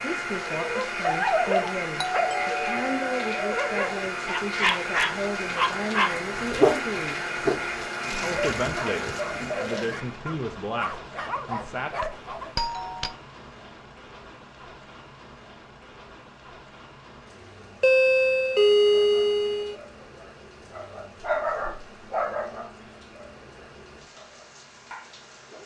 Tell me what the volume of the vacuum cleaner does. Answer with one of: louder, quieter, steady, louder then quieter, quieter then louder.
steady.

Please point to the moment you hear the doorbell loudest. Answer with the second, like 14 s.
19 s.